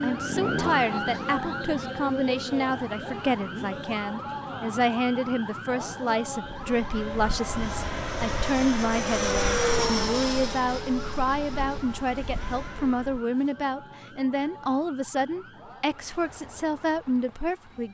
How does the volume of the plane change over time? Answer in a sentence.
The loudness of the plane goes up, then down.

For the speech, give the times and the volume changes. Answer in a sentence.
You can hear the speech from 0.0 to 17.8 s, at a steady volume.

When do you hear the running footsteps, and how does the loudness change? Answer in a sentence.
The running footsteps can't be heard in this clip.